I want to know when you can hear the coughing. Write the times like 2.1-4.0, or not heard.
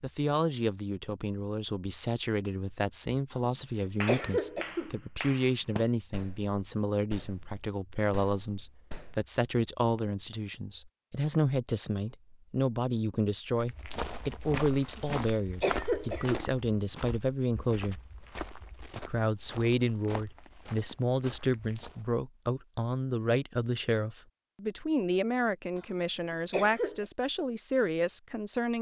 3.3-5.0, 14.8-16.5, 25.8-27.1.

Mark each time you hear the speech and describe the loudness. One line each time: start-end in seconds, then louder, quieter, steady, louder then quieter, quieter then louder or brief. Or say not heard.
0.0-18.0 steady
18.9-28.7 steady.